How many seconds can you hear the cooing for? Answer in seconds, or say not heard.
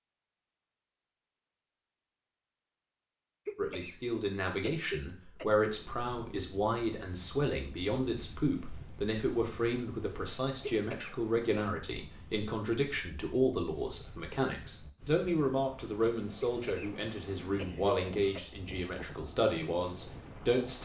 not heard.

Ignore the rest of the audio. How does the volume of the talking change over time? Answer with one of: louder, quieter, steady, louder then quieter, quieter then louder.
steady.